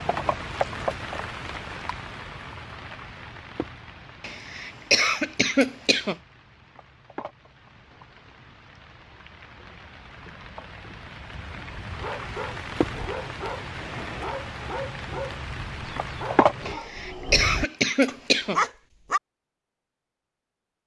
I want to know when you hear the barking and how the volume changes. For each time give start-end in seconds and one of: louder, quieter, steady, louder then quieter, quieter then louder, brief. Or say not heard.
11.9-19.2 louder.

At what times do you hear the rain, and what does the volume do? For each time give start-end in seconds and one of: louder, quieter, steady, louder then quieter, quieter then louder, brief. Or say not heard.
0.0-16.8 quieter then louder.